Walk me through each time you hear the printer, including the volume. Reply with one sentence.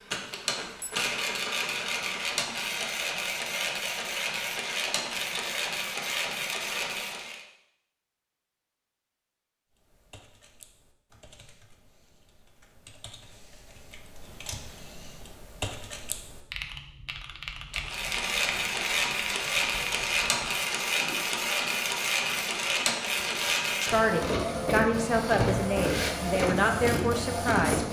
The printer can be heard from 0.0 to 7.5 s, at a steady volume; and from 17.7 to 27.8 s, at a steady volume.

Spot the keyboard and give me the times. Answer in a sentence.
You can hear the keyboard from 9.7 to 21.2 s.